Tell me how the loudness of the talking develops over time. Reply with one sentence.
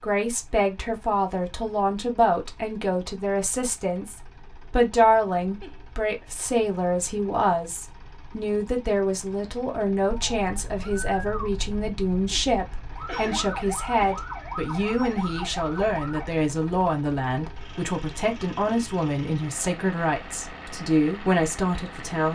The volume of the talking stays about the same.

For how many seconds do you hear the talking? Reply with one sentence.
The talking can be heard for 22 seconds in total.